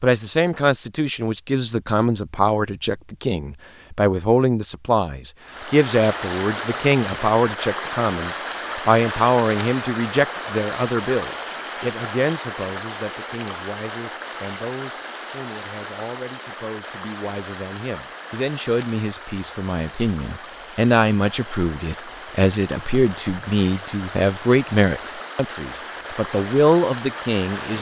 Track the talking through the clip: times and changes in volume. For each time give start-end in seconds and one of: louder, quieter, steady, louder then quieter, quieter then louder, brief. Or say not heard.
0.0-27.7 quieter then louder.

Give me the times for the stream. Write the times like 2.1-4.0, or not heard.
5.4-27.7.